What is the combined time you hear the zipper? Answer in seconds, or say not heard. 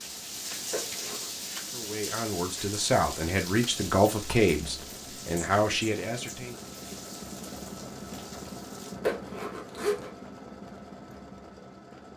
2 s.